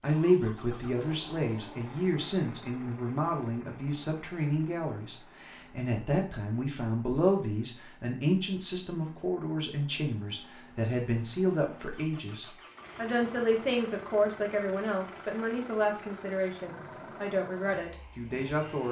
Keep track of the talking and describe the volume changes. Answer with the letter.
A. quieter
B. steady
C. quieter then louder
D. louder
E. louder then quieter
B.